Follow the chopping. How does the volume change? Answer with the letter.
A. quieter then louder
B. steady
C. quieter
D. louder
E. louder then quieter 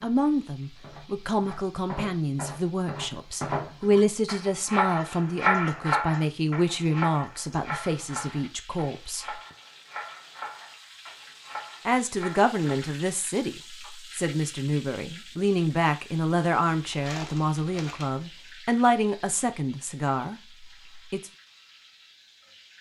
E.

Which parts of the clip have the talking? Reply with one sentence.
The talking can be heard from 0.0 to 9.4 s and from 11.8 to 21.3 s.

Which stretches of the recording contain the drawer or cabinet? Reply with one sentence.
You can't hear the drawer or cabinet here.